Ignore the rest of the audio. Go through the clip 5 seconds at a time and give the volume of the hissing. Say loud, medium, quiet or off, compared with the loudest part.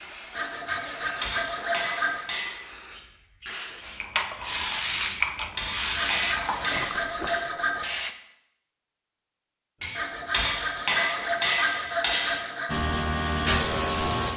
medium, loud, loud.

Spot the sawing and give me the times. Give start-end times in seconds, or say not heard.
0.3-2.4, 6.0-7.9, 9.9-12.7.